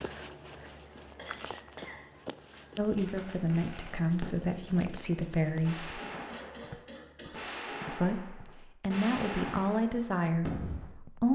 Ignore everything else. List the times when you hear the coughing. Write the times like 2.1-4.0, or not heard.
1.1-2.0, 6.0-7.5.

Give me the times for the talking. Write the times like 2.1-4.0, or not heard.
2.8-6.0, 7.9-11.3.